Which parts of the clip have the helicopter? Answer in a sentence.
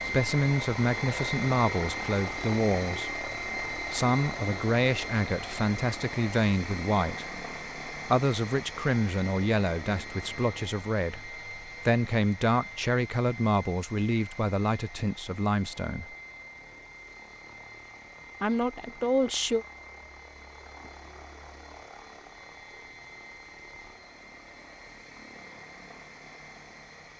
The helicopter can be heard from 0.0 to 27.1 s.